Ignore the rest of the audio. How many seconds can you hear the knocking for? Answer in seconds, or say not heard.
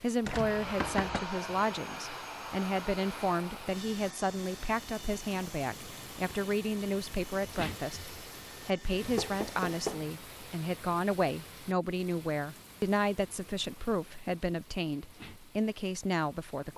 2 s.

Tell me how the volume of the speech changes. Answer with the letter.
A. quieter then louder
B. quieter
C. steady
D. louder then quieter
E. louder
C.